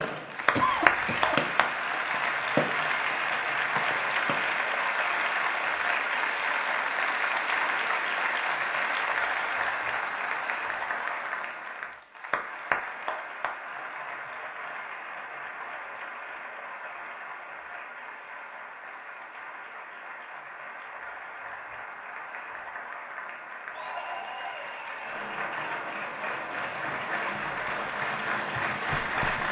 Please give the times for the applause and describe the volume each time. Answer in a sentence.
The applause can be heard from 0.1 to 29.4 s, getting quieter then louder.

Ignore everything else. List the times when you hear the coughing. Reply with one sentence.
You can hear the coughing from 0.6 to 1.4 s.